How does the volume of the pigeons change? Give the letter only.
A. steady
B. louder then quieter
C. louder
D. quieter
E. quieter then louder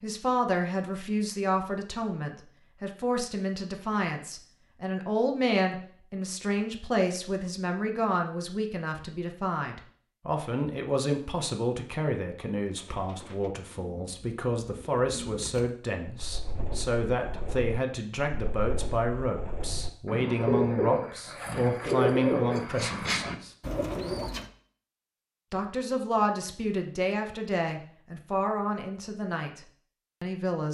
C.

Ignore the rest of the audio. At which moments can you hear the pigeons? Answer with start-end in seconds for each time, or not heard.
12.7-24.4.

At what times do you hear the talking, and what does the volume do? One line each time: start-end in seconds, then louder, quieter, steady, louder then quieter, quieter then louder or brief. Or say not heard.
0.0-23.5 steady
25.5-30.6 quieter.